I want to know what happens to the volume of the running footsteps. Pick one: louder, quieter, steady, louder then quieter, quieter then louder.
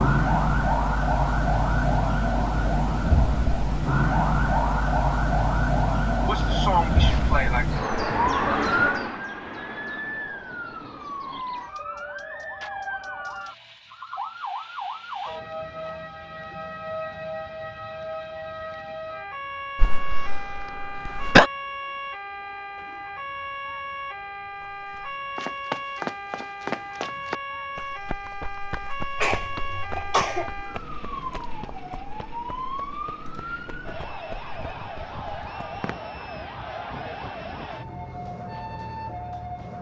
quieter.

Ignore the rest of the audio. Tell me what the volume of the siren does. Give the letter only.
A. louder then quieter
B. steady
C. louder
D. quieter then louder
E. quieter
E.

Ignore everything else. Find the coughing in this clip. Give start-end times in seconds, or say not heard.
6.2-7.7, 19.8-21.5, 29.2-30.5.